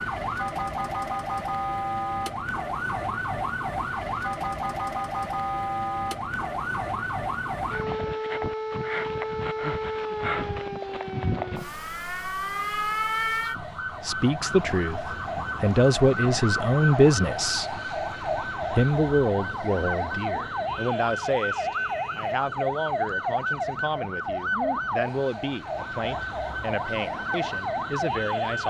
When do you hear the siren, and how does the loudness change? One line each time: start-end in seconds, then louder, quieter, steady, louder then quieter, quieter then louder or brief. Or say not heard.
0.0-28.6 steady.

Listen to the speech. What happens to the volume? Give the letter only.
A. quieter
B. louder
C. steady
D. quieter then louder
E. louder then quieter
A.